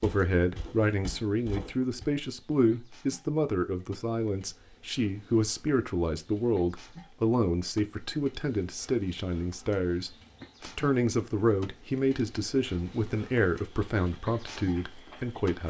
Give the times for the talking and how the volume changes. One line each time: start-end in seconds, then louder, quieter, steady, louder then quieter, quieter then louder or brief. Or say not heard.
0.0-15.6 steady.